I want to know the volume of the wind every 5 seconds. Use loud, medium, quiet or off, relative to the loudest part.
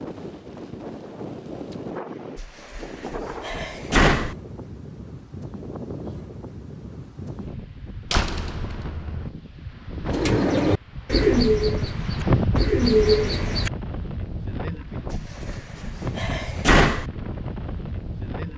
medium, medium, loud, medium.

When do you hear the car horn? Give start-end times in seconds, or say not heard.
not heard.